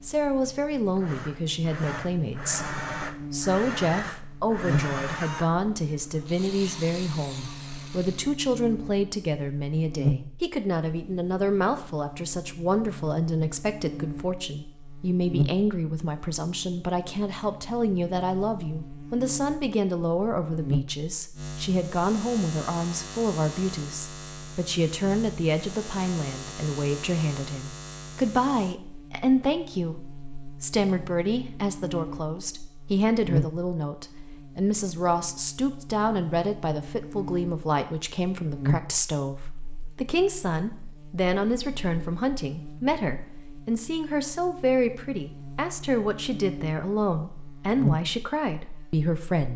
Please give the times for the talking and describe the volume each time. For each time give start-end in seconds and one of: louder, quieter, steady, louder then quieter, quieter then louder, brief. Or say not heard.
0.0-49.5 steady.